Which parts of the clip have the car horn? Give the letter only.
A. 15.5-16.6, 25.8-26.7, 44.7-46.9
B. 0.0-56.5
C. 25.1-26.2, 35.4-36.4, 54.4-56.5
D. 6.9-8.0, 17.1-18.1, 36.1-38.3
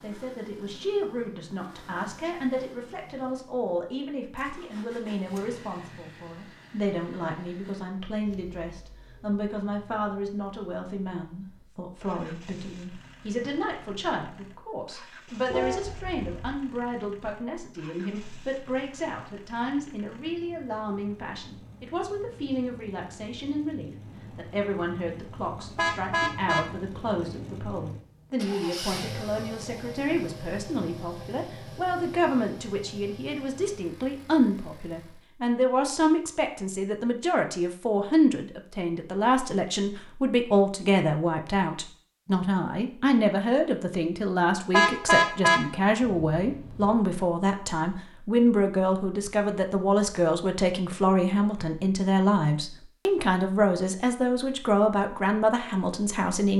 A.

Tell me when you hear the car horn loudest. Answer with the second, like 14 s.
45 s.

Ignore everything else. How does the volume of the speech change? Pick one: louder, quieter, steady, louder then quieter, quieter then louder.
louder.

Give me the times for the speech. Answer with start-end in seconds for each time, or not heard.
0.0-56.5.